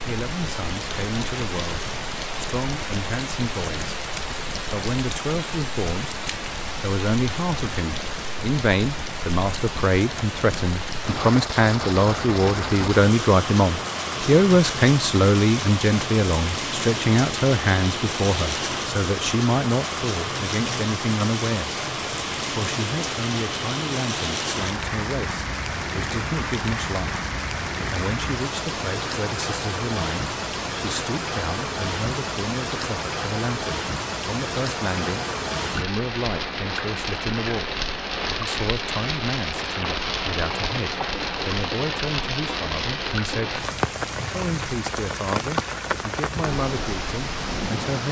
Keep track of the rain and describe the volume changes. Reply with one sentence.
The loudness of the rain stays about the same.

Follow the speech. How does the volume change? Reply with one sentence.
The volume of the speech goes up, then down.